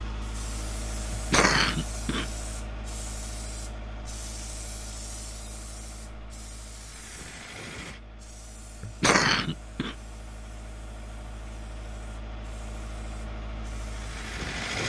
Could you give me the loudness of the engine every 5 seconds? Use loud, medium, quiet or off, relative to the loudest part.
loud, medium, loud.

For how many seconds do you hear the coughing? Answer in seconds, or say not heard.
2 s.